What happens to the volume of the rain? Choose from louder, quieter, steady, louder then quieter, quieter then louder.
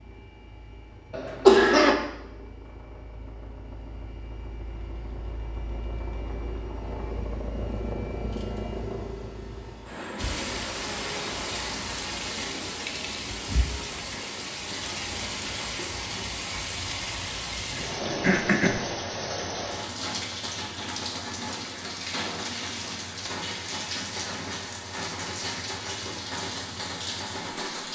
steady.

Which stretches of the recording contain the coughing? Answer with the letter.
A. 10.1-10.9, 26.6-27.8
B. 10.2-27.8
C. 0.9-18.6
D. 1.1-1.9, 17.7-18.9
D.